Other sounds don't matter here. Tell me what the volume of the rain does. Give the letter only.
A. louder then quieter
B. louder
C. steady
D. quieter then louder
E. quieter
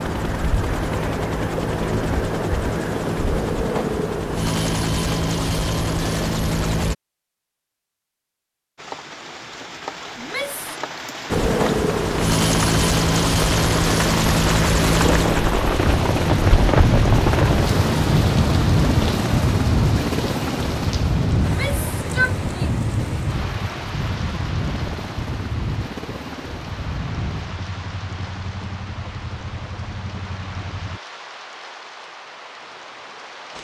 A.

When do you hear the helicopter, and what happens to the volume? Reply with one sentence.
You can hear the helicopter from 0.0 to 7.0 s, at a steady volume; and from 11.3 to 31.0 s, getting quieter.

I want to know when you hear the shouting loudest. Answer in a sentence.
The loudest moment of the shouting is at 22 seconds.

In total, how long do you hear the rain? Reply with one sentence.
The rain can be heard for 25 seconds in total.